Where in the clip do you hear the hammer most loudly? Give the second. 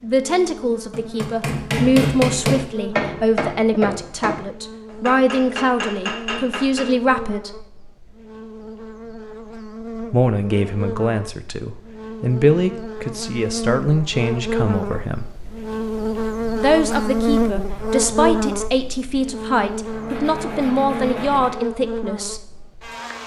2 s.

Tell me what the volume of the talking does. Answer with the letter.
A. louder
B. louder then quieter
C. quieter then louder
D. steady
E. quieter
D.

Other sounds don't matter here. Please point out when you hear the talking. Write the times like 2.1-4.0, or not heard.
0.0-7.6, 10.1-15.2, 16.6-22.4.